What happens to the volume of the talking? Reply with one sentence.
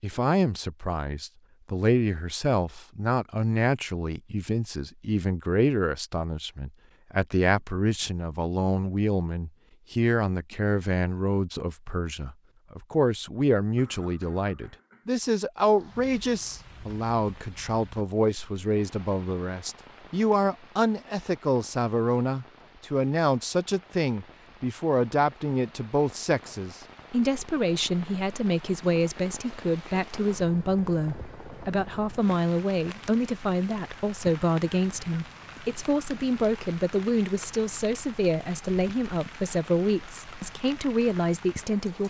The volume of the talking stays about the same.